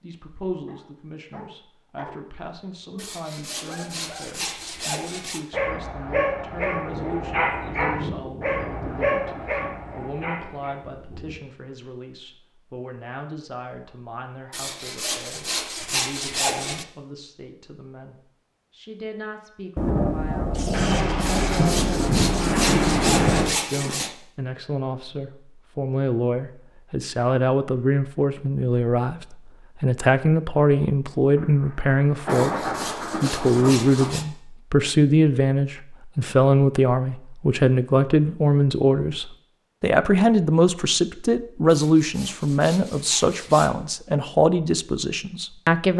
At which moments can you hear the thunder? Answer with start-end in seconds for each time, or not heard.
6.5-11.3, 19.8-23.6, 31.4-34.1.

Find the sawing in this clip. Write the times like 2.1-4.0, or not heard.
3.0-5.5, 14.5-16.9, 21.2-24.1, 32.2-34.2, 41.6-43.8.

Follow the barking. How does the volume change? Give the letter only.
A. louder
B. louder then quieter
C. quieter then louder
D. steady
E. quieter
B.